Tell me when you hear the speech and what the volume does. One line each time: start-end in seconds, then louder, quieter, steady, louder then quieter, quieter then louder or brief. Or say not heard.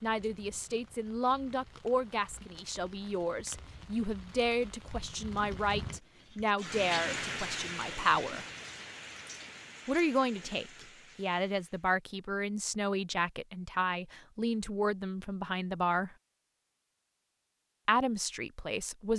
0.0-8.4 steady
9.8-16.1 steady
17.9-19.1 brief.